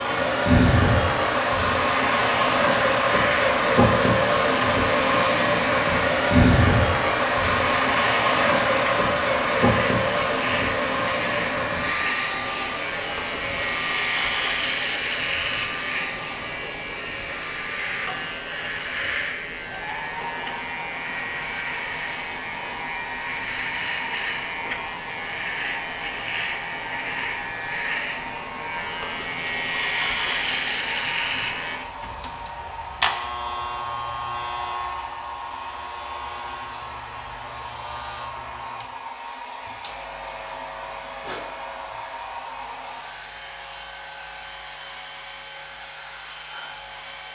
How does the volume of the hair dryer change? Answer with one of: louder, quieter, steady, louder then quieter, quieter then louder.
quieter.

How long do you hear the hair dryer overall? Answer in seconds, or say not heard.
47 s.